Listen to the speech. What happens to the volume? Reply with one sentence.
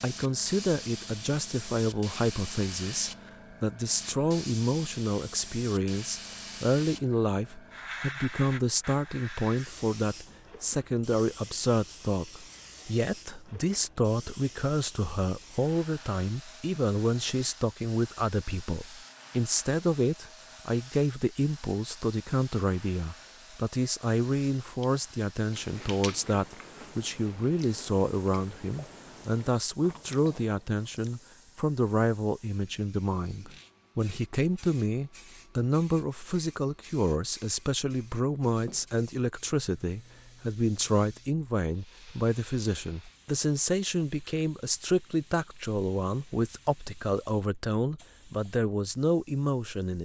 The volume of the speech stays about the same.